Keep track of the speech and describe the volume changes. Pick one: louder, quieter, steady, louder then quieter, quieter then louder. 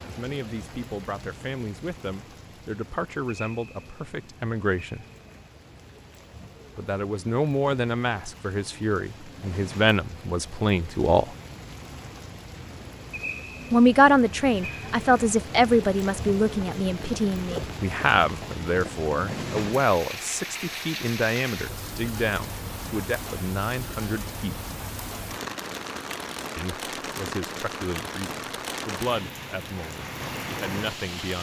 louder then quieter.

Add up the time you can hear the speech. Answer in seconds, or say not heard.
25 s.